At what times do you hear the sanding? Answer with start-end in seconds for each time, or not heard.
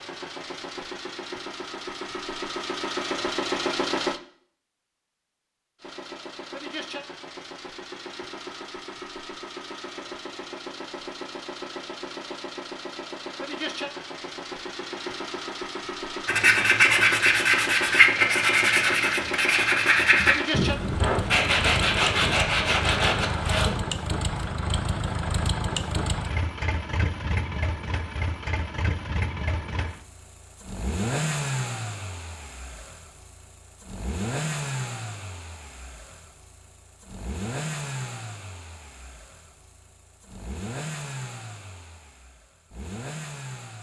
16.2-23.8.